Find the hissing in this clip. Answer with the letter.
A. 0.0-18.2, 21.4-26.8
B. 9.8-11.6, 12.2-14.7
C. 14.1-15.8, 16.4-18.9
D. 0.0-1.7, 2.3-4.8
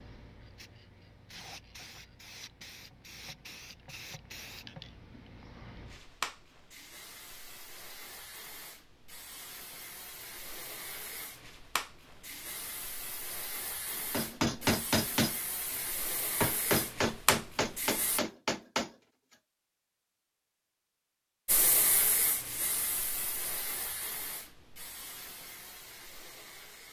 A.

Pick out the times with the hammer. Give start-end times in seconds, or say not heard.
14.1-15.8, 16.4-18.9.